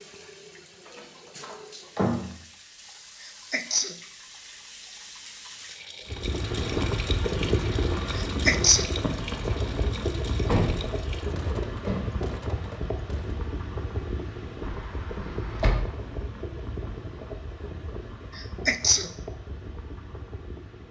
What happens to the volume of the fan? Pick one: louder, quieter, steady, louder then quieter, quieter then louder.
quieter.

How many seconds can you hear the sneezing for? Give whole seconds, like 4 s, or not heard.
2 s.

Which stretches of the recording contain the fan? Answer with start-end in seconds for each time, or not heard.
6.0-20.8.